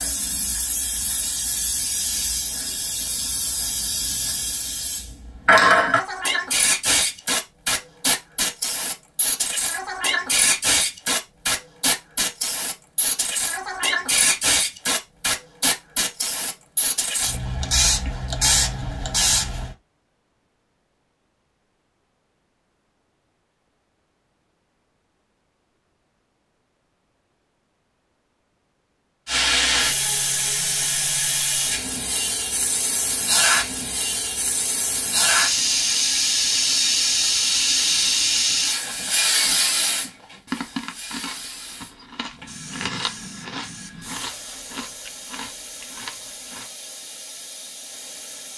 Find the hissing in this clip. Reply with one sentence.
You can hear the hissing from 0.0 to 19.8 s and from 29.2 to 48.5 s.